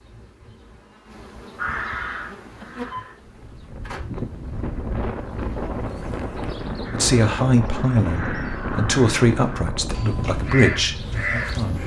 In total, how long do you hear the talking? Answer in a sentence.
The talking can be heard for 5 seconds in total.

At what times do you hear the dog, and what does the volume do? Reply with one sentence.
The dog can't be heard in this clip.